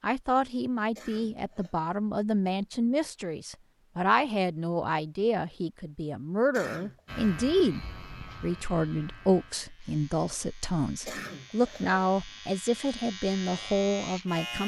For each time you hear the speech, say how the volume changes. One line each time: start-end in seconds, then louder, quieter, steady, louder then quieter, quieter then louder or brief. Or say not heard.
0.0-14.6 steady.